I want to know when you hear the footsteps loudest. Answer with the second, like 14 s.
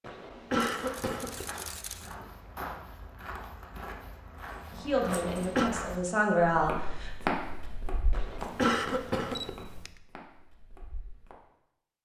7 s.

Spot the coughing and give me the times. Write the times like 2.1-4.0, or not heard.
0.0-1.4, 5.0-5.7, 8.1-9.5.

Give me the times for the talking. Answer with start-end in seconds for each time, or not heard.
4.8-6.7.